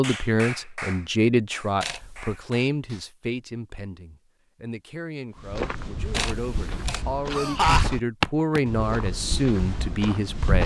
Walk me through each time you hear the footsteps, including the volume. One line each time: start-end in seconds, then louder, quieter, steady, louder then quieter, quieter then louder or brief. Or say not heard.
5.4-10.6 louder then quieter.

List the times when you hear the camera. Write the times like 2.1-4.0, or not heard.
1.8-2.4, 6.1-7.0.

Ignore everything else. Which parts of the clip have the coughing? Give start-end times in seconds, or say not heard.
7.3-7.8.